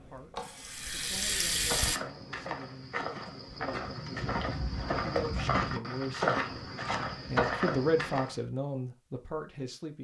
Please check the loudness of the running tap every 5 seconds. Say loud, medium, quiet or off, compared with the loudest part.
loud, off.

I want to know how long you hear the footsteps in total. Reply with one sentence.
You can hear the footsteps for 7 seconds altogether.